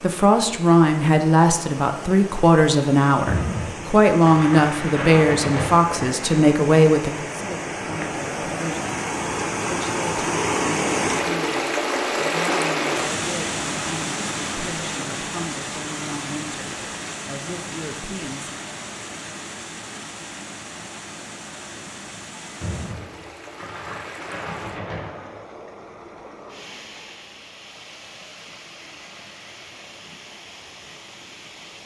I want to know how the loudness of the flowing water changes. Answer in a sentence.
The loudness of the flowing water goes up, then down.